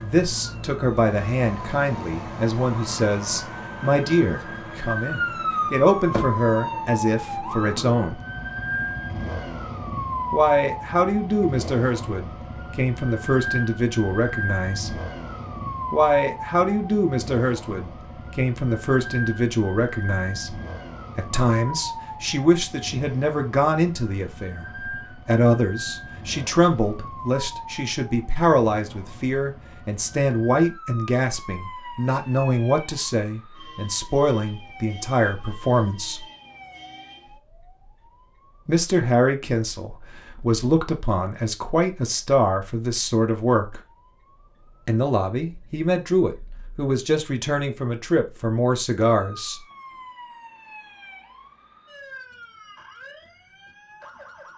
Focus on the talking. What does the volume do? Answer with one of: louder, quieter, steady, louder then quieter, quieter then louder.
steady.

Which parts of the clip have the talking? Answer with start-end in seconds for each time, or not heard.
0.0-8.2, 10.3-15.0, 15.9-36.2, 38.6-43.8, 44.9-49.6.